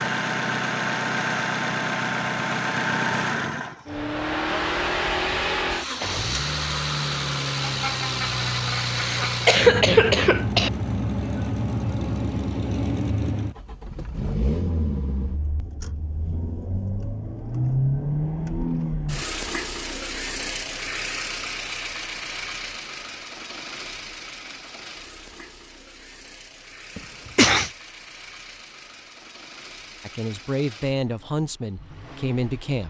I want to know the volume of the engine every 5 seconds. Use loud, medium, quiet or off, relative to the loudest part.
loud, loud, loud, loud, medium, quiet, quiet.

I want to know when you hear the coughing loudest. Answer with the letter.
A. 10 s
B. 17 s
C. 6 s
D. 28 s
A.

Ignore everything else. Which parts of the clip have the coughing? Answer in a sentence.
The coughing can be heard from 8.9 to 10.7 s and from 26.9 to 27.7 s.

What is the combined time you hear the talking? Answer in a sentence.
You can hear the talking for 3 seconds altogether.